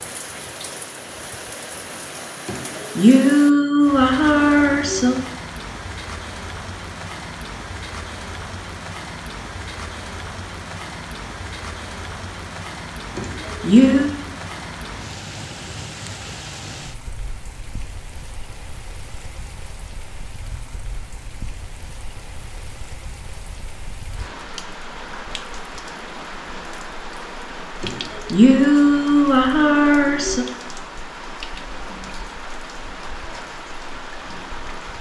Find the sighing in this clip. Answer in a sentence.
You can hear the sighing from 2.5 to 5.2 s, from 13.2 to 14.1 s and from 27.8 to 30.4 s.